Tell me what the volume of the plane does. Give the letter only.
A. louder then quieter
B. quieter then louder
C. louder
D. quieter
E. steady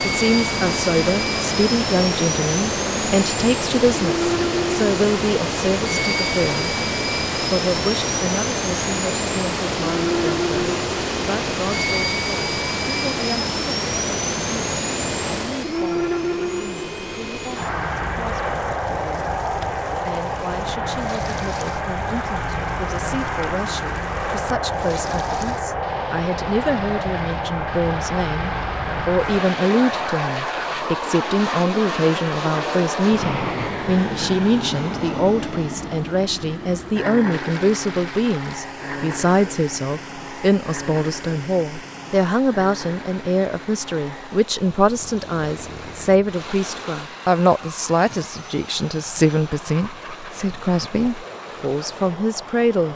D.